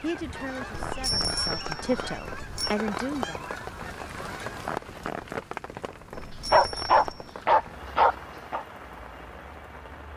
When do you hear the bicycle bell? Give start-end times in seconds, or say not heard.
0.7-2.8, 6.2-7.3.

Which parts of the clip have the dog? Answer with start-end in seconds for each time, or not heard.
6.5-8.7.